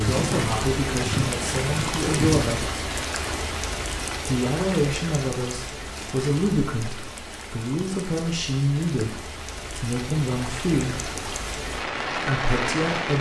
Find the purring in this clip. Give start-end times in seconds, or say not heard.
0.0-2.8.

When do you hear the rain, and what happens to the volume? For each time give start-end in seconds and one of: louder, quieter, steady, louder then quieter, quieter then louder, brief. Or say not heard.
0.0-13.1 quieter then louder.